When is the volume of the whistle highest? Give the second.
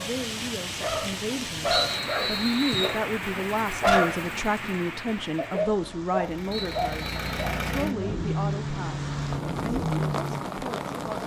2 s.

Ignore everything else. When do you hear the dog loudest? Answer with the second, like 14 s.
4 s.